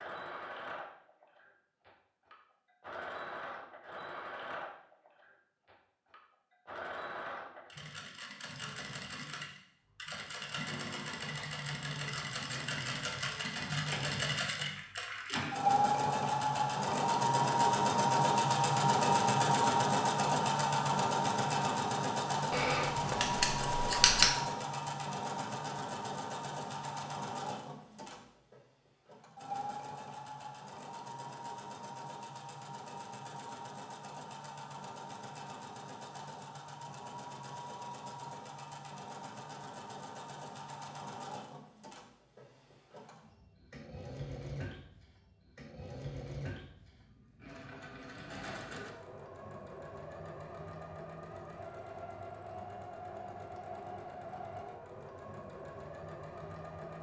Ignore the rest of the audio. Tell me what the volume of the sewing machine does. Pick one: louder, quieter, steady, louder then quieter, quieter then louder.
louder then quieter.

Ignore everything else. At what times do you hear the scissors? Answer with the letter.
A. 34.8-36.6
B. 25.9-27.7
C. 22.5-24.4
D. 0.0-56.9
C.